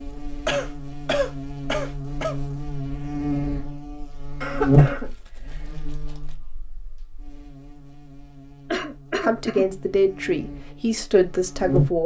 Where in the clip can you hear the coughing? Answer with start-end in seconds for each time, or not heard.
0.5-2.4, 4.4-6.0, 8.7-9.7.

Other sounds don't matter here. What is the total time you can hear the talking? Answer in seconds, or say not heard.
3 s.